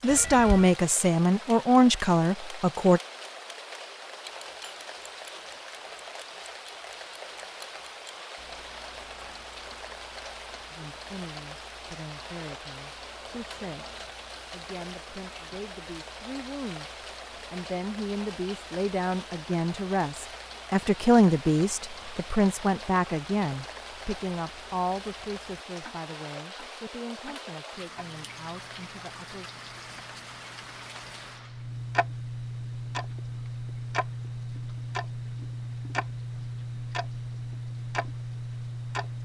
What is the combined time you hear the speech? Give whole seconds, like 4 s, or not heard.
22 s.